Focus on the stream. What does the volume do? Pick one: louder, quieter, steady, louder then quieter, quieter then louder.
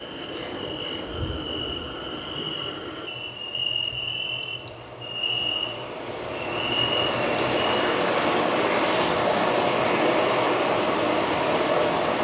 louder.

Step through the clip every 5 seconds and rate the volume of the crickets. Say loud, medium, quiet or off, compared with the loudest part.
loud, loud, off.